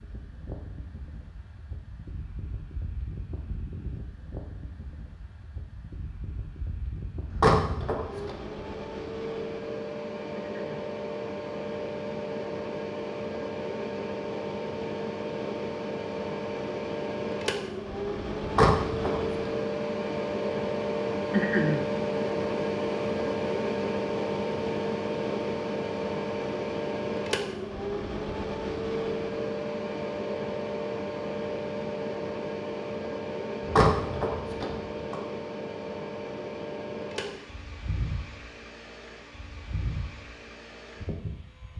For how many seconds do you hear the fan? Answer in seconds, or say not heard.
42 s.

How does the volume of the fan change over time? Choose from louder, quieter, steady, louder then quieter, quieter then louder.
louder then quieter.